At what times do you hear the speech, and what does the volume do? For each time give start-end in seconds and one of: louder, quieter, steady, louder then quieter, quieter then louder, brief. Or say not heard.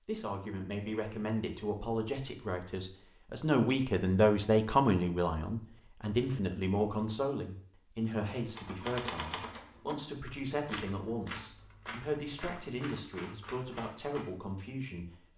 0.1-15.3 louder then quieter.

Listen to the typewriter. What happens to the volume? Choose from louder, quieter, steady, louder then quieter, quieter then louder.
quieter.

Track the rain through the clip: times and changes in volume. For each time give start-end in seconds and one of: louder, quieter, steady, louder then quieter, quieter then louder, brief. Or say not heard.
not heard.